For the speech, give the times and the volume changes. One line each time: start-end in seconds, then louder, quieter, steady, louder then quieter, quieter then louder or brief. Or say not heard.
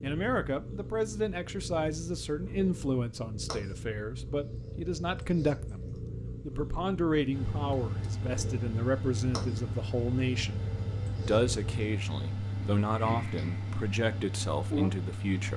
0.0-15.5 steady.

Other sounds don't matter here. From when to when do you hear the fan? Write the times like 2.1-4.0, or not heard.
7.3-15.5.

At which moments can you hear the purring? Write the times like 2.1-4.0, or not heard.
0.0-15.5.